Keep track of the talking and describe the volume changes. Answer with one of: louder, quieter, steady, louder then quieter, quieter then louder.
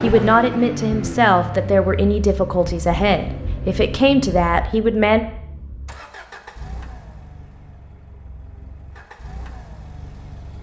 steady.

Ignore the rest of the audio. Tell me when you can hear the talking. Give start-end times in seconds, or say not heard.
0.0-5.2.